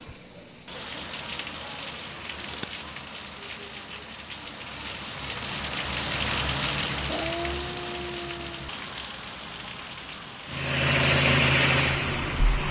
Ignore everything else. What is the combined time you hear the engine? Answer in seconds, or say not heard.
2 s.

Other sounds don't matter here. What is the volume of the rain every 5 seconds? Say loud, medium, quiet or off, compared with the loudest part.
medium, loud, medium.